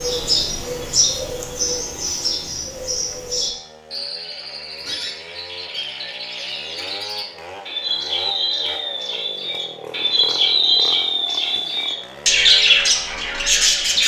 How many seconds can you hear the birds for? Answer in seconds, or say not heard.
14 s.